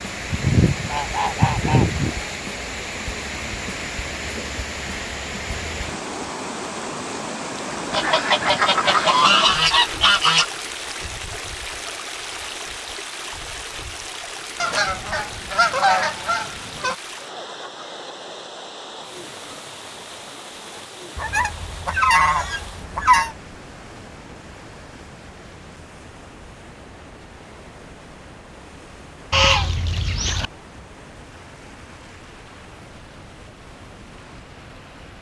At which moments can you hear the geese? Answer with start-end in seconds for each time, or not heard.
0.3-2.1, 7.9-10.4, 14.6-16.9, 21.1-23.4, 29.3-30.5.